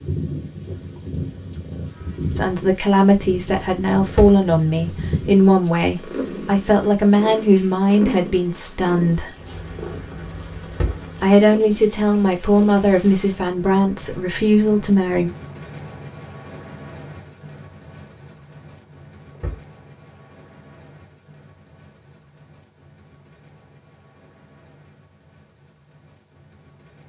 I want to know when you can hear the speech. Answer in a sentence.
The speech can be heard from 2.4 to 9.3 s and from 11.2 to 15.3 s.